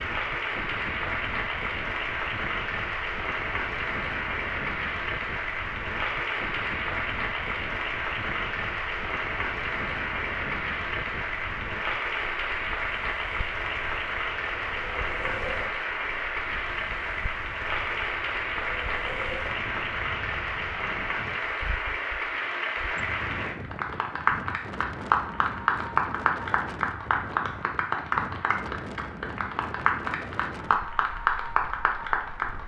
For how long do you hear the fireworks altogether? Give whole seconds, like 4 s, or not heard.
not heard.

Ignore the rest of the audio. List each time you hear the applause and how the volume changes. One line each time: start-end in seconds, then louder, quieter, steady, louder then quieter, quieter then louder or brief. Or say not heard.
0.0-32.6 steady.